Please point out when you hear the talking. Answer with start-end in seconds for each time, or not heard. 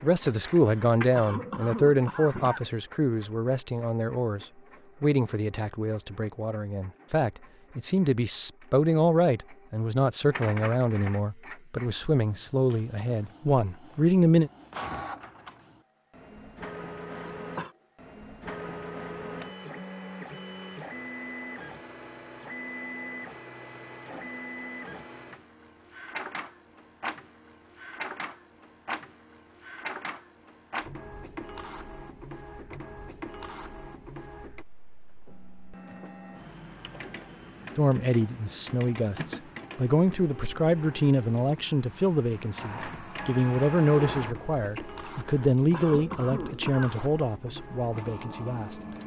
0.0-14.5, 37.8-48.8.